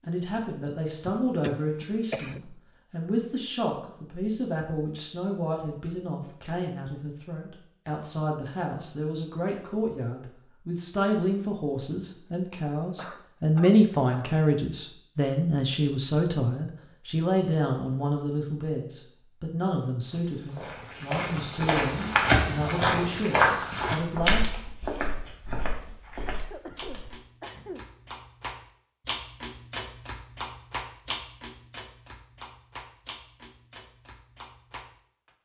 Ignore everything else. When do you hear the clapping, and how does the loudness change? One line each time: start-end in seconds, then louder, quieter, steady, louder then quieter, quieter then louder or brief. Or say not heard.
26.0-35.4 louder then quieter.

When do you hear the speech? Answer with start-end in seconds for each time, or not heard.
0.0-24.6.